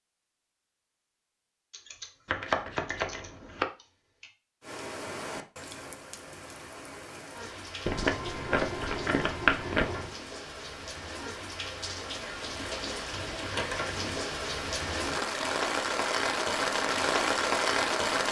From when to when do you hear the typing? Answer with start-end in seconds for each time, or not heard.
1.7-4.3, 12.4-13.9.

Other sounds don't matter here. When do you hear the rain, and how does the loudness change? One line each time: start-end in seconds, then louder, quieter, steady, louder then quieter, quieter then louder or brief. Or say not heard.
4.6-18.2 louder.